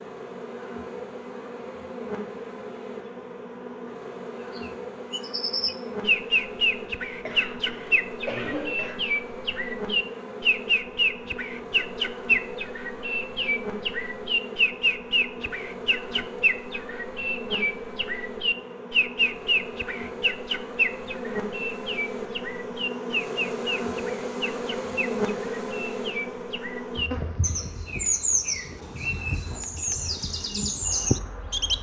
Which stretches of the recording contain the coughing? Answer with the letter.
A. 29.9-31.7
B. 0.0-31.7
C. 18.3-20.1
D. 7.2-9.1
D.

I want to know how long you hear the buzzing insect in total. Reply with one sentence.
You can hear the buzzing insect for 32 seconds altogether.